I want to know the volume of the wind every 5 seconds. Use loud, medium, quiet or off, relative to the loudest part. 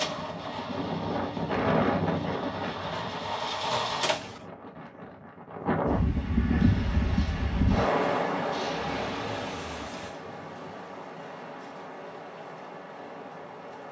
loud, loud, quiet.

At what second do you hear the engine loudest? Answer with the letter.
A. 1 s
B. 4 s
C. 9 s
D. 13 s
B.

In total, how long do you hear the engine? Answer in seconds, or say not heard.
8 s.